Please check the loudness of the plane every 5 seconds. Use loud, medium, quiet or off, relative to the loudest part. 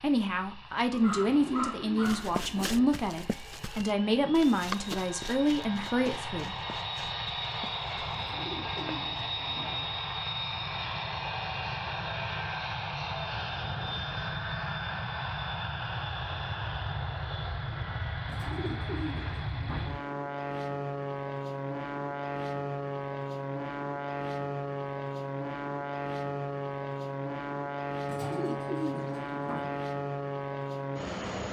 quiet, loud, loud, loud, loud, loud, loud.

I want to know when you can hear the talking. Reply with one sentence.
You can hear the talking from 0.0 to 6.5 s.